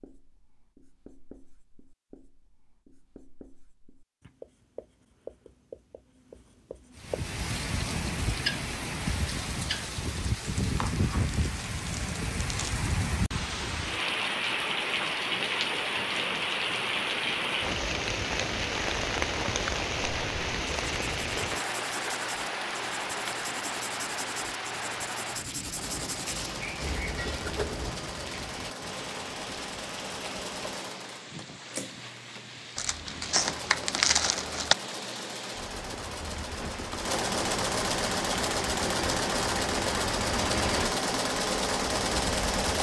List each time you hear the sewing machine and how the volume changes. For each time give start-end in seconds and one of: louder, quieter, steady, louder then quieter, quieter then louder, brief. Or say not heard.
25.8-42.7 louder.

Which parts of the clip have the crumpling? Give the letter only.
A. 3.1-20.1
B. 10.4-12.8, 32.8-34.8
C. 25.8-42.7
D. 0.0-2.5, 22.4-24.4
B.